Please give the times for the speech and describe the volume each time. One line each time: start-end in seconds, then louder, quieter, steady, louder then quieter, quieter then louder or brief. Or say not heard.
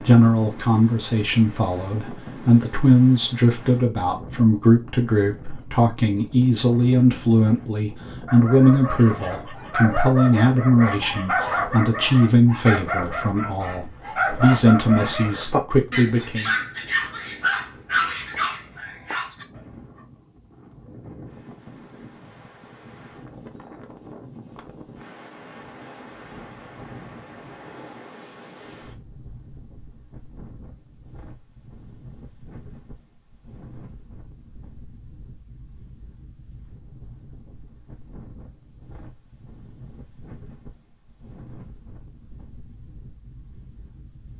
0.0-16.5 steady.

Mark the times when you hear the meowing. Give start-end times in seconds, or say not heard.
not heard.